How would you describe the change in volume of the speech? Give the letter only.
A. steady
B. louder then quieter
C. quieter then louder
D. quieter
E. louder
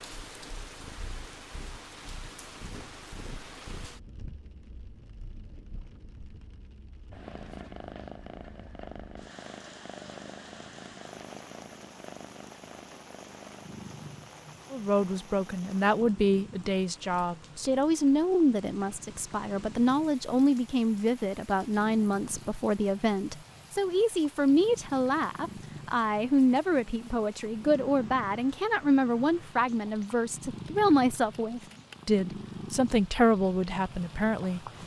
A.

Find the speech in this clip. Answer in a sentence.
You can hear the speech from 14.7 to 34.6 s.